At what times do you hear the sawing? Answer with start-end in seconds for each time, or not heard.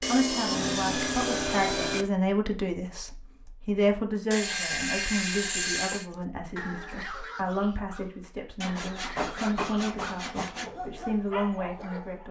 0.0-2.0, 4.3-6.0, 8.6-10.7.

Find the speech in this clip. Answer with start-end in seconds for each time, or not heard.
0.1-12.2.